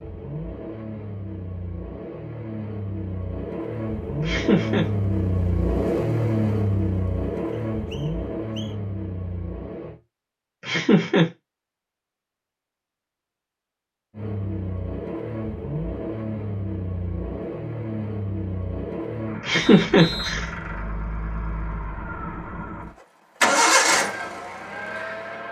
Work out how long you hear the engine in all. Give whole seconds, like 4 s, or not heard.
21 s.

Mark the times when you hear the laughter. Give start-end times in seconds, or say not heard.
4.2-4.8, 10.6-11.3, 19.4-20.4.